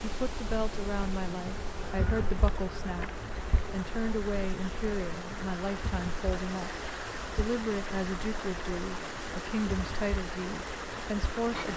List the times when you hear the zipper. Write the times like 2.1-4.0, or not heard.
not heard.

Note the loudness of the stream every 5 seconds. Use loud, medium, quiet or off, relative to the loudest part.
medium, loud, loud.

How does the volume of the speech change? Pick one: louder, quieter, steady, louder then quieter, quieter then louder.
steady.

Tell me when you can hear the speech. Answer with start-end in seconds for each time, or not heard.
0.0-11.7.